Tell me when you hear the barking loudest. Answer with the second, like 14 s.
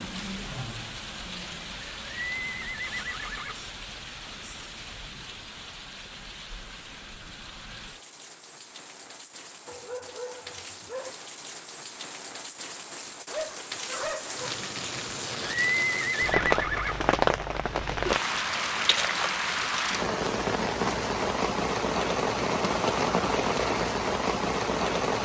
14 s.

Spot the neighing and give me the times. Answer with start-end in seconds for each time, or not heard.
2.0-3.5, 15.4-16.9.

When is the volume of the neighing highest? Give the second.
16 s.